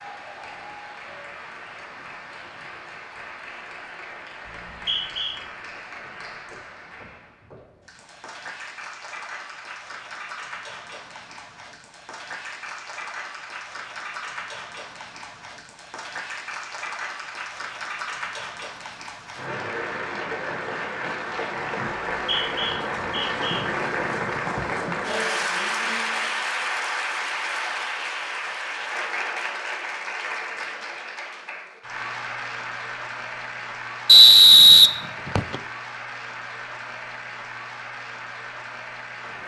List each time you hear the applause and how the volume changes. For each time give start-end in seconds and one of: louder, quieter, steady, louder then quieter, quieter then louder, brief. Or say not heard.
0.0-39.4 louder then quieter.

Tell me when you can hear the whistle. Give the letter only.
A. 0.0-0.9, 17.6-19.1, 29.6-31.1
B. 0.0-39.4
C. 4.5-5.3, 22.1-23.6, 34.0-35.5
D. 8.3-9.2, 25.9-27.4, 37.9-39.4
C.